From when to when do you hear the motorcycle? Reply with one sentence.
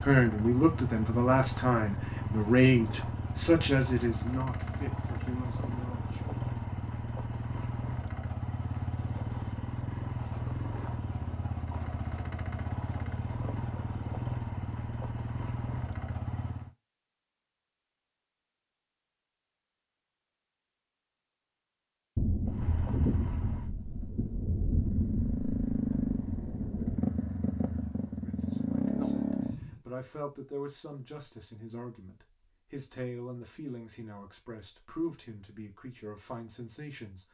You can hear the motorcycle from 0.0 to 16.7 s and from 22.4 to 29.8 s.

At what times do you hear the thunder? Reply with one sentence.
You can hear the thunder from 22.1 to 27.0 s.